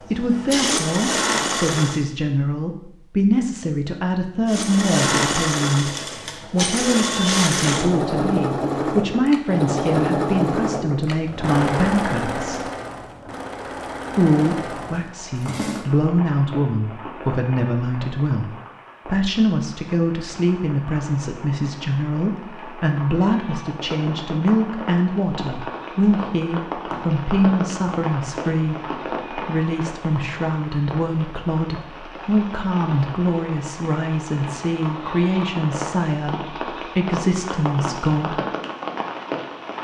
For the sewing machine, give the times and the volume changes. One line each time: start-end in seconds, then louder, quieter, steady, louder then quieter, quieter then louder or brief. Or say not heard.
0.0-2.0 brief
4.5-15.8 quieter.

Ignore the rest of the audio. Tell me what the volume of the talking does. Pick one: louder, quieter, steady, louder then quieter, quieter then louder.
steady.